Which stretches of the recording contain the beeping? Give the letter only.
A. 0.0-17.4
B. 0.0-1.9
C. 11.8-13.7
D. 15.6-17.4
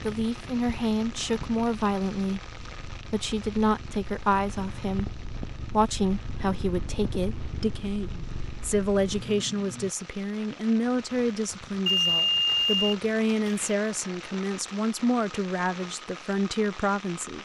C.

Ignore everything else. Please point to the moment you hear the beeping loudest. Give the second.
12 s.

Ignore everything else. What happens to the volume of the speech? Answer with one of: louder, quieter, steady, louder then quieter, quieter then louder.
steady.